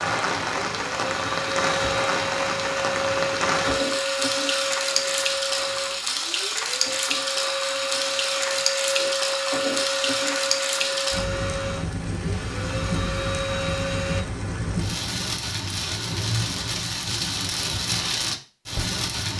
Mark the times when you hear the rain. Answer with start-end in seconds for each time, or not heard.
0.0-19.3.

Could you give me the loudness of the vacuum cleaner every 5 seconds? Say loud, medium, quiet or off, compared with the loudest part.
loud, loud, loud, off.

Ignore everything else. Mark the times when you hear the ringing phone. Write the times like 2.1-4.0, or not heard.
not heard.